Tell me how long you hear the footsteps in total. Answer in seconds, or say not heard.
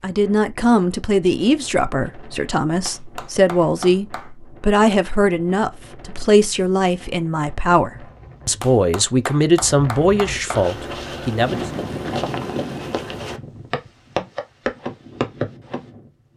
5 s.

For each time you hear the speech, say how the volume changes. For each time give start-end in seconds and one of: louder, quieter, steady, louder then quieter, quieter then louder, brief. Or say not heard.
0.0-11.7 steady.